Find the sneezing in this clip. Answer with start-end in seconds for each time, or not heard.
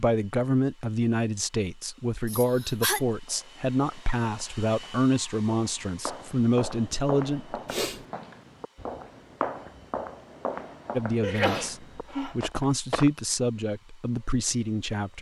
2.2-3.0, 7.7-8.1, 11.2-12.3.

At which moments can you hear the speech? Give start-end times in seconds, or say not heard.
0.0-7.6, 10.9-15.1.